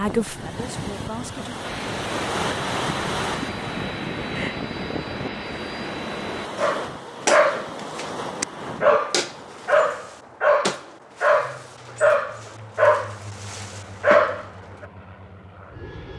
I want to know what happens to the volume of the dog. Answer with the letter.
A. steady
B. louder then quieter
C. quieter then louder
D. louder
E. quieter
A.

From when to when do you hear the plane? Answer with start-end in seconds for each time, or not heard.
1.6-6.5, 11.3-16.1.